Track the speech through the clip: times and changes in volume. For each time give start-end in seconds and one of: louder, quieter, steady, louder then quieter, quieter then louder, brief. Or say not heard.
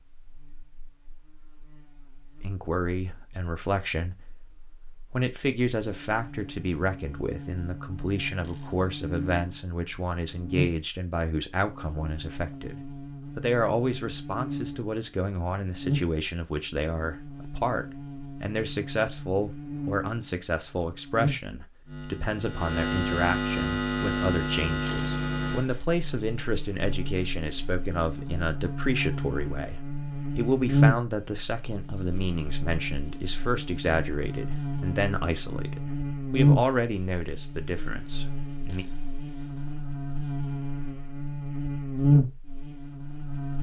2.4-38.9 steady.